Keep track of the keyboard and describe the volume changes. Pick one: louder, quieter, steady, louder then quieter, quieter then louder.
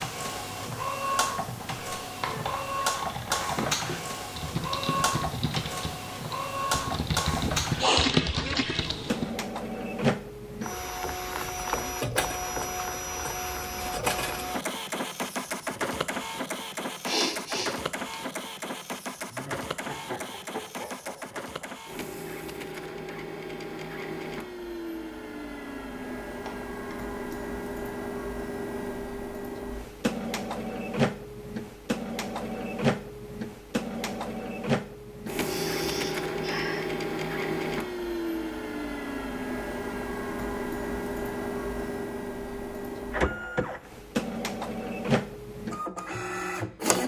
louder.